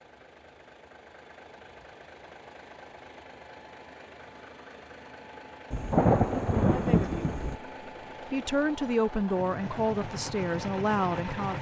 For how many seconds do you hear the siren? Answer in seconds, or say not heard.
not heard.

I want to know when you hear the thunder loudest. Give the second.
6 s.